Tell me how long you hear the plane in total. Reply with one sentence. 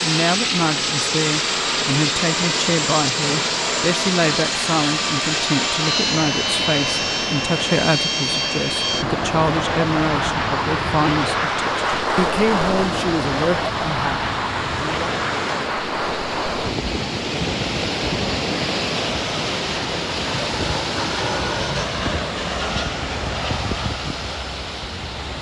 You can hear the plane for 25 seconds altogether.